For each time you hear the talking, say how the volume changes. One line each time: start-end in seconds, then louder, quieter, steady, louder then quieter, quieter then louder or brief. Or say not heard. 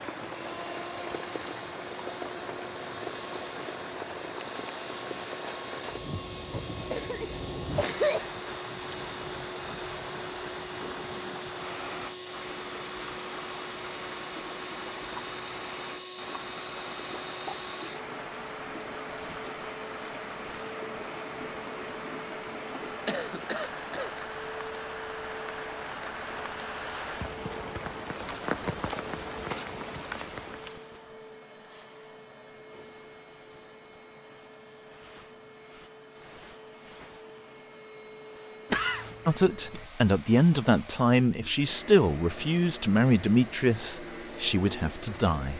39.2-45.5 quieter.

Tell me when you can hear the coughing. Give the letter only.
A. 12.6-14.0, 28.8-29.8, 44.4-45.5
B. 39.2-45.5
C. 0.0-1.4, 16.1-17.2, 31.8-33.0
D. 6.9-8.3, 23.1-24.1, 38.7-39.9
D.